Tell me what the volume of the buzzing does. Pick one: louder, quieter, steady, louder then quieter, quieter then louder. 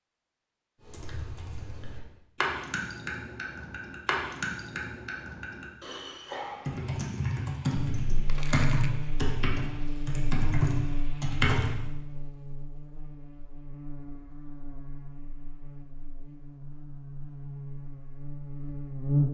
quieter then louder.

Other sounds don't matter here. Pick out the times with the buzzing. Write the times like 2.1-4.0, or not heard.
7.8-19.3.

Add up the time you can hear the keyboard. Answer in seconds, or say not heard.
11 s.